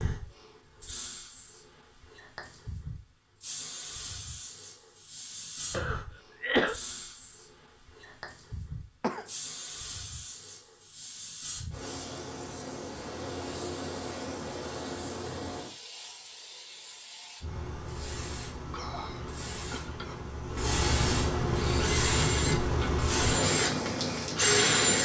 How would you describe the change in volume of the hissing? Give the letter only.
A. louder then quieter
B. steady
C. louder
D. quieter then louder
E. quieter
C.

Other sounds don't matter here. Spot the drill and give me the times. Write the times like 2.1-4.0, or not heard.
21.5-25.0.